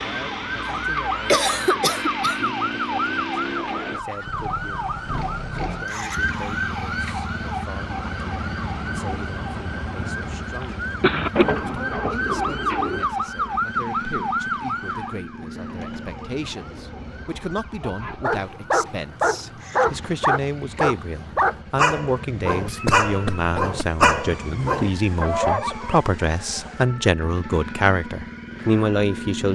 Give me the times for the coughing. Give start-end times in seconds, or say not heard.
1.2-2.5, 10.6-11.4, 22.6-24.1.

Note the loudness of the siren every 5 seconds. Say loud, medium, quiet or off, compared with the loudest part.
loud, loud, loud, quiet, quiet, quiet.